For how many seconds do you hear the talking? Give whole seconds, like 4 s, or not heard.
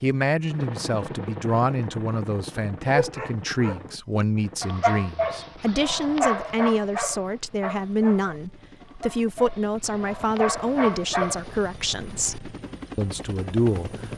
14 s.